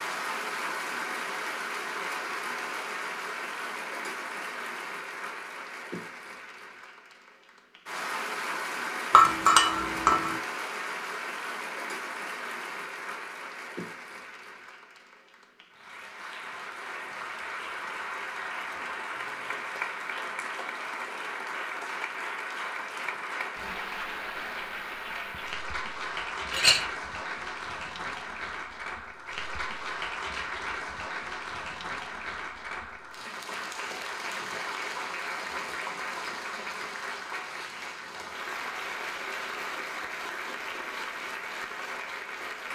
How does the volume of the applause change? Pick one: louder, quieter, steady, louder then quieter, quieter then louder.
steady.